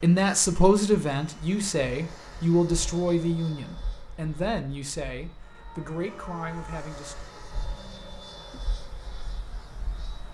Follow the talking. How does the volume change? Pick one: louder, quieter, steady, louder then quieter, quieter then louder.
quieter.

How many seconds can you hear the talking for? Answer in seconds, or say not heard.
7 s.